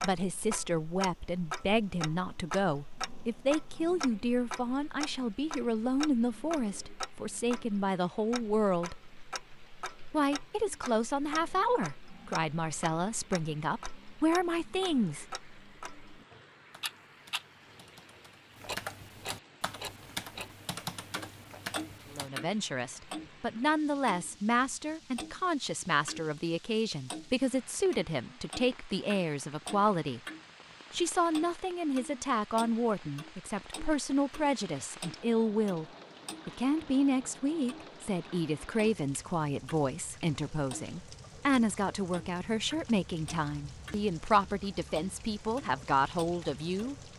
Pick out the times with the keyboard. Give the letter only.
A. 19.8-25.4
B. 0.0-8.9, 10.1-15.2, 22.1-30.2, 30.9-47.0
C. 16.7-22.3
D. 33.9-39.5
C.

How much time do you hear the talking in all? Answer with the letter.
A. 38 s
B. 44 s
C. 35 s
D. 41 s
A.